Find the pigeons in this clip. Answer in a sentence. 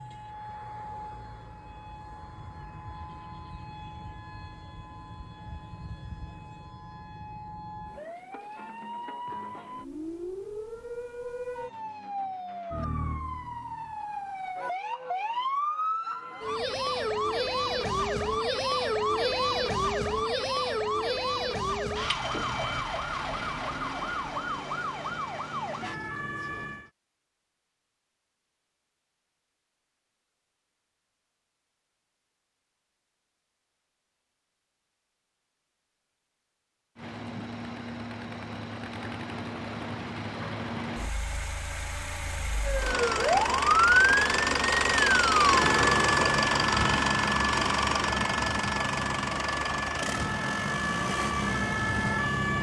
You can't hear the pigeons here.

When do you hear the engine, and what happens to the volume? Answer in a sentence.
You can hear the engine from 37.0 to 52.5 s, getting louder then quieter.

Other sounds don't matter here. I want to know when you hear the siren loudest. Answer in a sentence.
The volume of the siren peaks at 44 seconds.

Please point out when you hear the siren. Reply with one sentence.
You can hear the siren from 0.0 to 26.9 s and from 42.6 to 52.5 s.